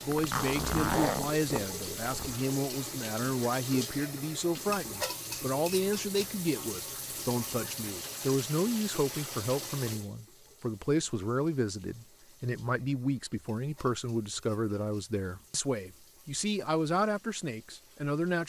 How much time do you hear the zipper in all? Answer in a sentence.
You can hear the zipper for 2 seconds altogether.